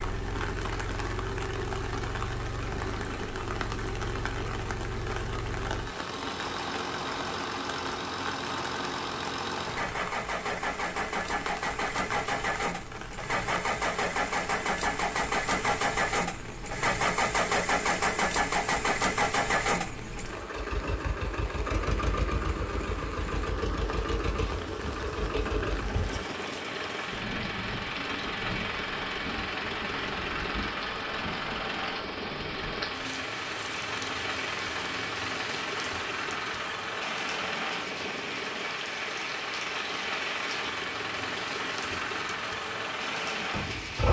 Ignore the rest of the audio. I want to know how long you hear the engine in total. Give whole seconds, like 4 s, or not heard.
44 s.